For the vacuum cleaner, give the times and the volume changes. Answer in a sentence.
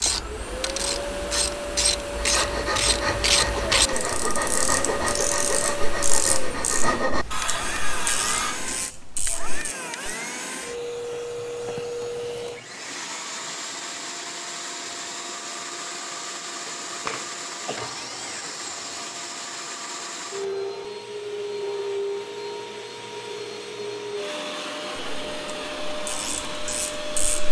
The vacuum cleaner can be heard from 0.0 to 27.4 s, at a steady volume.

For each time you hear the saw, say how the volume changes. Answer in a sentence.
You can hear the saw from 2.1 to 8.6 s, at a steady volume.